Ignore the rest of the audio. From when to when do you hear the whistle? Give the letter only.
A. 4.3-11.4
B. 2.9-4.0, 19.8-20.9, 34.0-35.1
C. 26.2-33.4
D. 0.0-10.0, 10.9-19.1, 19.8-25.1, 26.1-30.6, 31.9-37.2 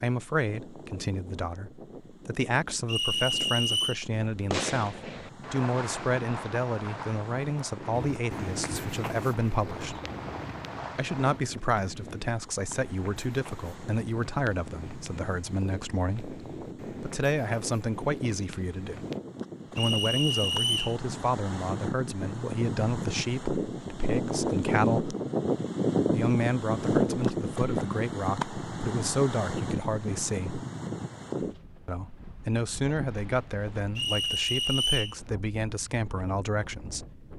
B.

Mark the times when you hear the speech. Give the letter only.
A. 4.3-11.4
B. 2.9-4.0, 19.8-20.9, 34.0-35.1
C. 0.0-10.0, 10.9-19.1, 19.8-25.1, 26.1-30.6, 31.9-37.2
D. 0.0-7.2
C.